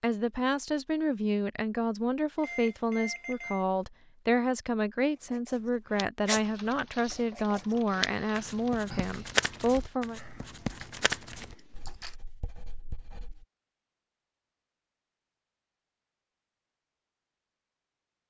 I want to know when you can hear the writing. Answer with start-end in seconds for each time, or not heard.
5.2-13.4.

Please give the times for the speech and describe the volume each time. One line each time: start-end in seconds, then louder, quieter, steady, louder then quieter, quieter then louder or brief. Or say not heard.
0.0-10.2 steady.